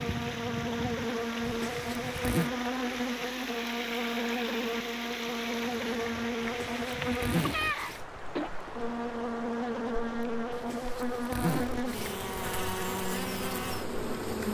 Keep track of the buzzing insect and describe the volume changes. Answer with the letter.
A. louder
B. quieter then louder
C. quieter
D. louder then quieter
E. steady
E.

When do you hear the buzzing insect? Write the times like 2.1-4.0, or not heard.
0.0-14.5.